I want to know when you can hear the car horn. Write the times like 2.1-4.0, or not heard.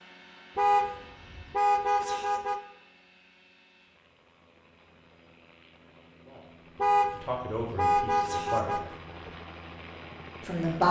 0.6-2.6, 6.8-9.3.